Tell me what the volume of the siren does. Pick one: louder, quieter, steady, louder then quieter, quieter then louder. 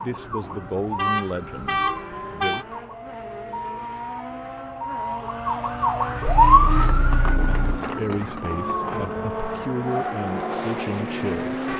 louder then quieter.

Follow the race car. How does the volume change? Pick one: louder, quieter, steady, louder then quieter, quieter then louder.
louder.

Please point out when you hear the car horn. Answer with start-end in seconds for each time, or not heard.
0.9-2.6, 6.2-7.8.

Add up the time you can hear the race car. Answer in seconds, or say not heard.
12 s.